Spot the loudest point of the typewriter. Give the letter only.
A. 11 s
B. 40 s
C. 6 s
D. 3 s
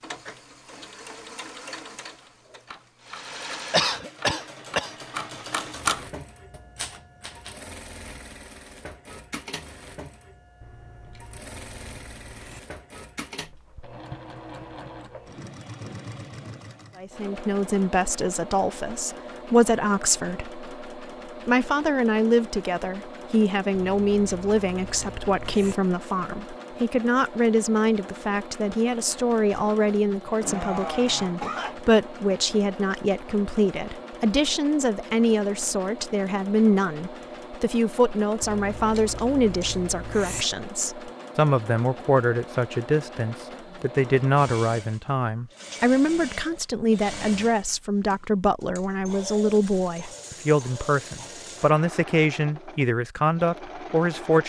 C.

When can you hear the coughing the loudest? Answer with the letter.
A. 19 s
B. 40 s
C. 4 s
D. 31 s
C.